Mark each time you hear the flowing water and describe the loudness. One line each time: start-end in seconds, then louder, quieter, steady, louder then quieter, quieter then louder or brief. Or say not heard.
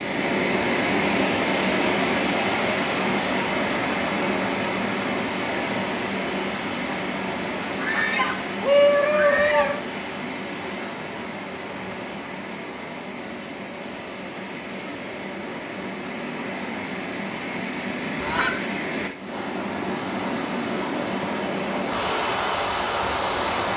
0.0-23.7 quieter then louder.